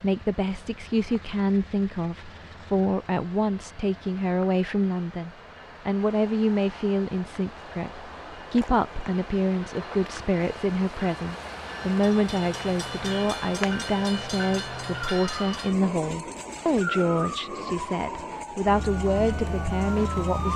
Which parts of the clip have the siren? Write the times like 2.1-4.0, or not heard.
11.9-20.5.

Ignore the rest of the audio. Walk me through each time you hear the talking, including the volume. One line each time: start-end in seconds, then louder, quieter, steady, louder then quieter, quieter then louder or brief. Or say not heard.
0.0-20.5 steady.